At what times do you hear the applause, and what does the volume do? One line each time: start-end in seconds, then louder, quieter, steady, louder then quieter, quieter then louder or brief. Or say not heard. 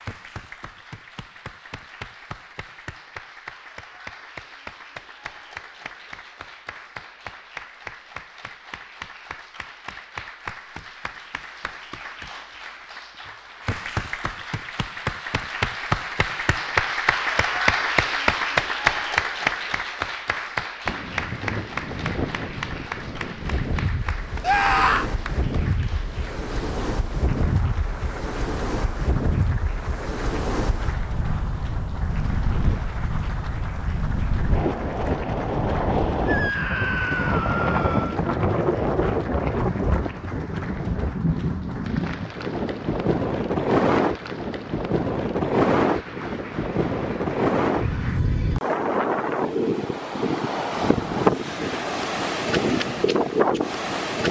0.0-48.2 louder then quieter.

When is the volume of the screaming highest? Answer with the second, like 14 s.
25 s.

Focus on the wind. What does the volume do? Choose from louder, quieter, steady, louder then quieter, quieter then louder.
louder.